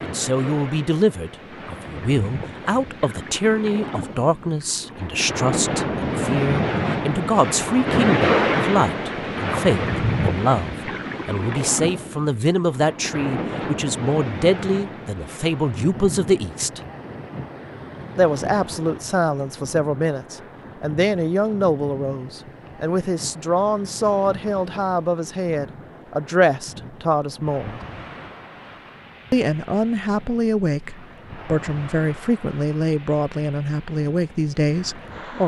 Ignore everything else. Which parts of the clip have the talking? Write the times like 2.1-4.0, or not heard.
0.0-16.8, 18.1-27.8, 29.3-35.4.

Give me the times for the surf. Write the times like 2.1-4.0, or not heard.
0.0-35.4.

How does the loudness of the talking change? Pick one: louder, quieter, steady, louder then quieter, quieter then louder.
steady.